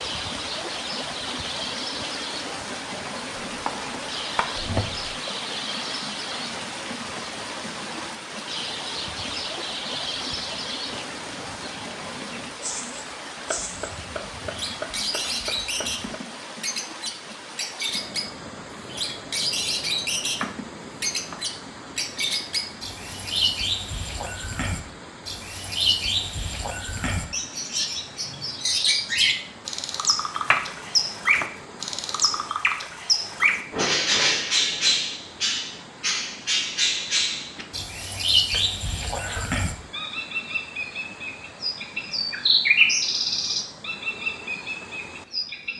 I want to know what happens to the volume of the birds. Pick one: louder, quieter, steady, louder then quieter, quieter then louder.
louder.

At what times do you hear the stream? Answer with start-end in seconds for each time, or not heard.
0.0-45.7.